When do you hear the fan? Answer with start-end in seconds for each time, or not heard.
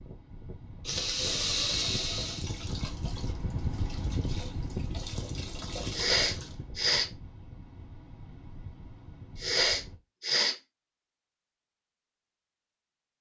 0.0-10.0.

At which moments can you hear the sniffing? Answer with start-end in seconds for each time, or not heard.
0.8-2.5, 5.9-7.0, 9.3-10.6.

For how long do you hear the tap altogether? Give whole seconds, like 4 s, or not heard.
5 s.